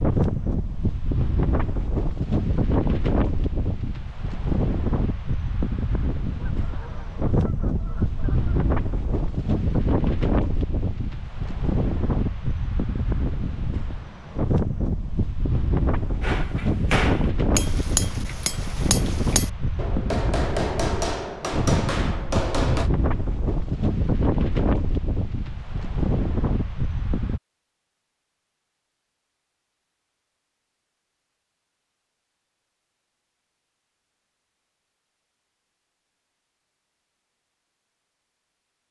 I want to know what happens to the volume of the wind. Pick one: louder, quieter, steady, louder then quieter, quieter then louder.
steady.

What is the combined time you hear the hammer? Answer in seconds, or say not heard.
7 s.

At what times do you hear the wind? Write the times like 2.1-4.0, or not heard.
0.0-27.4.